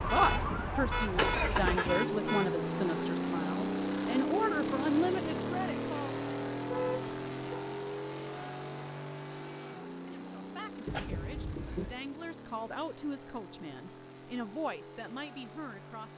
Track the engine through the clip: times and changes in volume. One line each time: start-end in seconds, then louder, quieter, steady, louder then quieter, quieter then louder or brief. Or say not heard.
0.0-16.1 quieter.